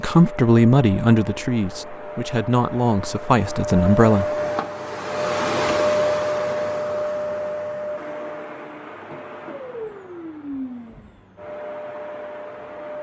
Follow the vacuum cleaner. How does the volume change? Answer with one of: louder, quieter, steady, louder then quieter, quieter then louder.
louder then quieter.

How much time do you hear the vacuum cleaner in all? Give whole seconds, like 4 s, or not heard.
13 s.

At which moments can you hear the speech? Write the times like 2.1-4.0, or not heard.
0.0-4.2.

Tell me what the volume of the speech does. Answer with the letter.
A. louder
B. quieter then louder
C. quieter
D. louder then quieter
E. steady
B.